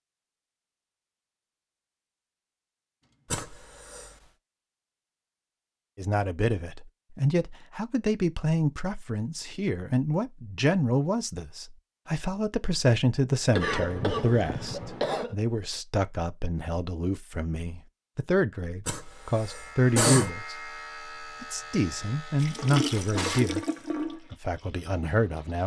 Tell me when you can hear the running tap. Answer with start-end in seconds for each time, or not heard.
22.4-25.6.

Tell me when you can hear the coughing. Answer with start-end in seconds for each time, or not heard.
3.3-4.1, 13.5-15.3, 18.9-20.3.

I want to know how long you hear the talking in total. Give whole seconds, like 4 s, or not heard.
19 s.